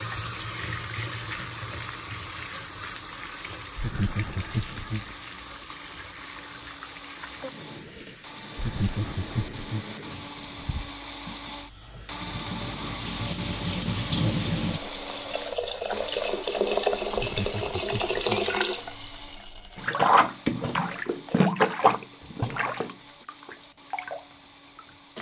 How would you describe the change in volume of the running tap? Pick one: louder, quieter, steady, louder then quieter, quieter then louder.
quieter then louder.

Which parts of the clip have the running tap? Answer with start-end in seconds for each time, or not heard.
0.0-25.1.